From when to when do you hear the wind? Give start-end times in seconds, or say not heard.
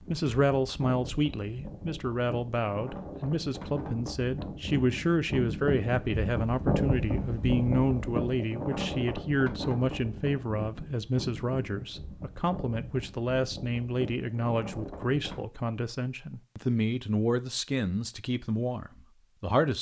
0.0-15.4.